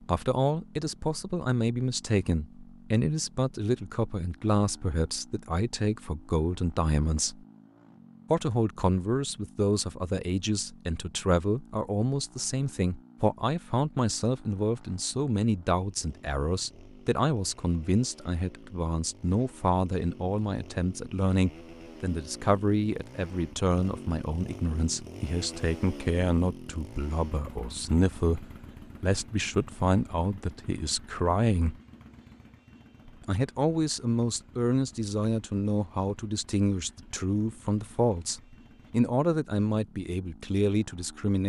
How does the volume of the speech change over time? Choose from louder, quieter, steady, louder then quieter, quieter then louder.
steady.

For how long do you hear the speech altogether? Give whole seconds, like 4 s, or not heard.
39 s.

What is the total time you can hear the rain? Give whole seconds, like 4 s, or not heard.
not heard.